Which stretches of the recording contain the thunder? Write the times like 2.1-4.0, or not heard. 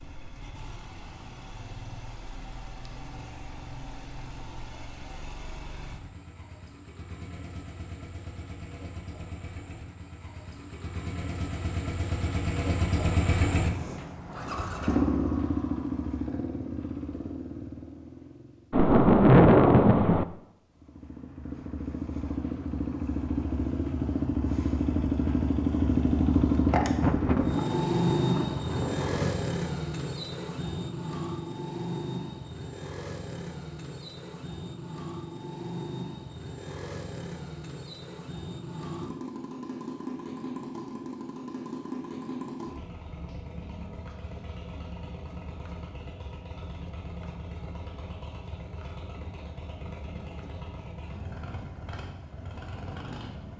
18.7-20.2, 26.9-29.4.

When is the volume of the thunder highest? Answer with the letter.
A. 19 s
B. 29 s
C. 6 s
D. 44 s
A.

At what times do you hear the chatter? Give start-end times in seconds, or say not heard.
not heard.